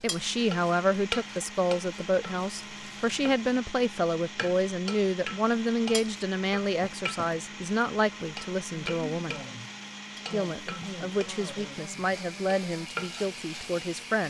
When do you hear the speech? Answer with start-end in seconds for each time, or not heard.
0.0-9.4, 10.3-14.2.